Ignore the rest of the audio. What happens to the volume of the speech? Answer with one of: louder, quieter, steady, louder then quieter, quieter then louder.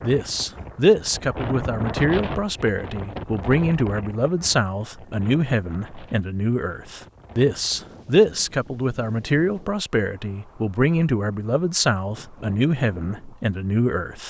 steady.